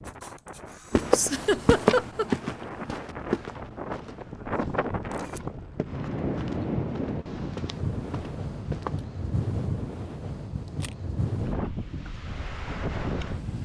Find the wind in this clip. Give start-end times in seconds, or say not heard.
0.0-13.6.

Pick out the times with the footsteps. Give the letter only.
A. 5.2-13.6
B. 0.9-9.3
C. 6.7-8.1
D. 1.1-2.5
B.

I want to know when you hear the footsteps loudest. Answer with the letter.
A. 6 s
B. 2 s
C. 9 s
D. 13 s
B.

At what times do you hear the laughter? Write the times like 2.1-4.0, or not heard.
1.1-2.5.